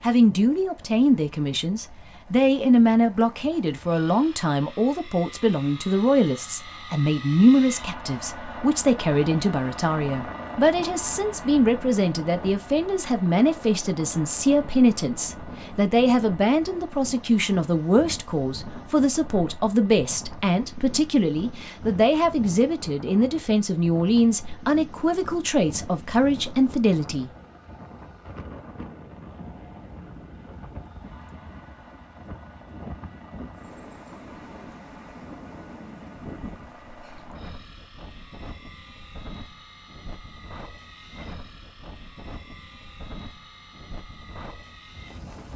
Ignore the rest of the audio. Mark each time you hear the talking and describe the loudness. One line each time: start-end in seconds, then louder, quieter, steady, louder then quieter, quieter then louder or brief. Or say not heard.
0.0-27.3 steady.